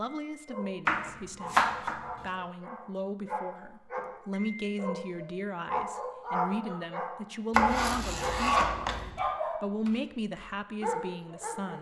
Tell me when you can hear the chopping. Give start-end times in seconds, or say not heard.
0.8-2.0, 7.5-9.2.